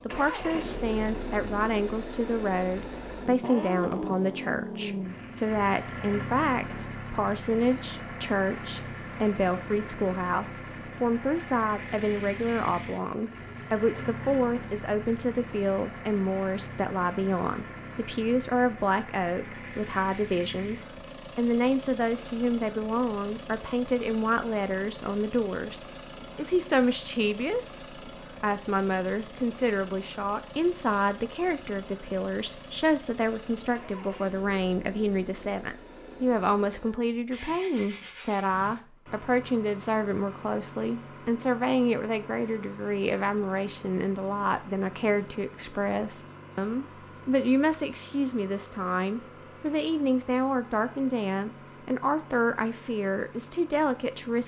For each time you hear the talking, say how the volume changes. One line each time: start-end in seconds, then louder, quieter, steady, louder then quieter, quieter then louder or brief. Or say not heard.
0.1-54.4 steady.